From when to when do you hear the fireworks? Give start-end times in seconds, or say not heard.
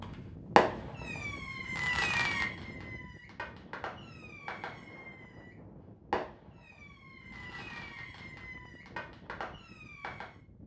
0.0-10.4.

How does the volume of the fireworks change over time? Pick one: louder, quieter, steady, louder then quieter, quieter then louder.
quieter.